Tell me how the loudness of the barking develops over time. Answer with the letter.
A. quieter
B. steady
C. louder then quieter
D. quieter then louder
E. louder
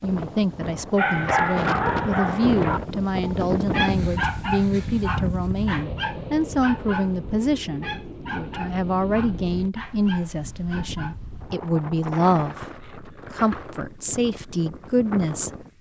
A.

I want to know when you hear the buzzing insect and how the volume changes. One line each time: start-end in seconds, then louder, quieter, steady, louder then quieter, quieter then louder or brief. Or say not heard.
not heard.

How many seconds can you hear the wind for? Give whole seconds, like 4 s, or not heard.
16 s.